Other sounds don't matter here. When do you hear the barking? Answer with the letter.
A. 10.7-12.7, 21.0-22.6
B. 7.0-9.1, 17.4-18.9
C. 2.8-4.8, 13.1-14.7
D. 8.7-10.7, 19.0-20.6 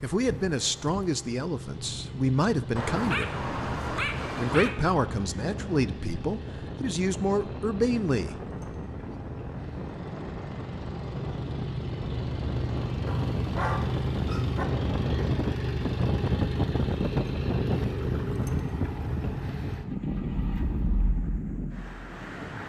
C.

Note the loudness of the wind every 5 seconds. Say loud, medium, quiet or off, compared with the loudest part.
medium, medium, loud, loud, loud.